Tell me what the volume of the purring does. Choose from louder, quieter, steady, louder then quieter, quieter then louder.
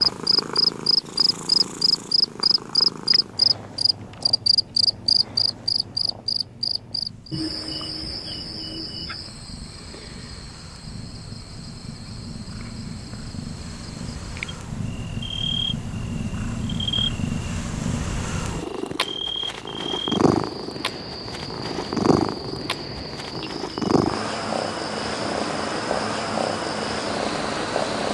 quieter then louder.